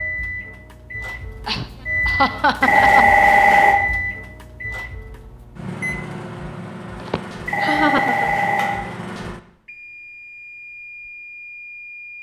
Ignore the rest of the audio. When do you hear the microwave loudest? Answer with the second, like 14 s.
2 s.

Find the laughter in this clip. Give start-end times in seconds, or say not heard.
1.4-3.0, 7.0-8.4.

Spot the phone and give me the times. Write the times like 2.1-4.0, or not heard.
2.6-3.8, 7.5-8.8.